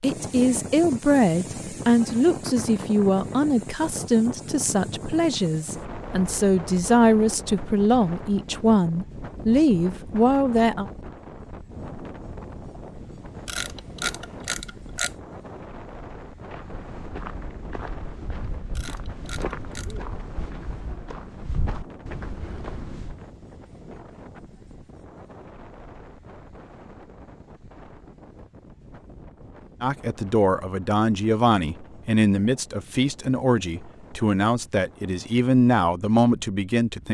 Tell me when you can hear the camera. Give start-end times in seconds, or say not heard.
13.4-15.2, 18.7-20.0.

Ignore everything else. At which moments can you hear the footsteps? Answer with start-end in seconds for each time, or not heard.
16.5-23.2.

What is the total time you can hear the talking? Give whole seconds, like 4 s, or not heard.
18 s.